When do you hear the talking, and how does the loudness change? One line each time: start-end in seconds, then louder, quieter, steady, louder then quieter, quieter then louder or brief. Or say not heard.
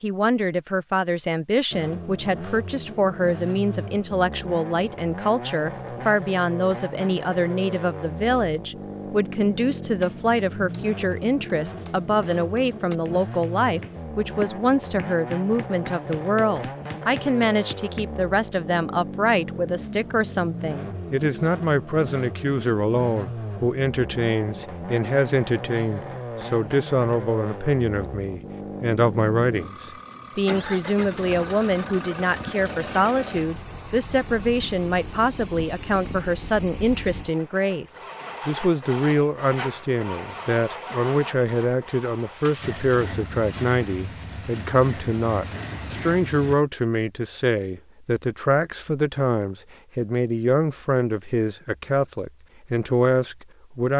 0.0-53.9 steady.